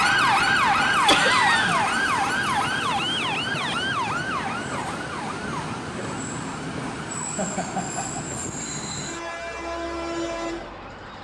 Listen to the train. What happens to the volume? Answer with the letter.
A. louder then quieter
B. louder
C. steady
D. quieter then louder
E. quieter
C.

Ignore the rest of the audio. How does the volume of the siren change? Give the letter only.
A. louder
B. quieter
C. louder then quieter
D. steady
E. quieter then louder
B.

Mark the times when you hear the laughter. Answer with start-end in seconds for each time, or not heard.
1.1-1.9, 7.3-8.2.